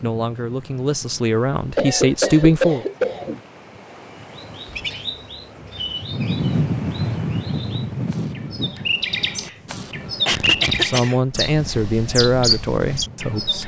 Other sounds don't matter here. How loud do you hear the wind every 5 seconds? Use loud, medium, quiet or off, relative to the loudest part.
quiet, loud, quiet.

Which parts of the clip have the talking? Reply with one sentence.
The talking can be heard from 0.0 to 2.9 s and from 10.8 to 13.6 s.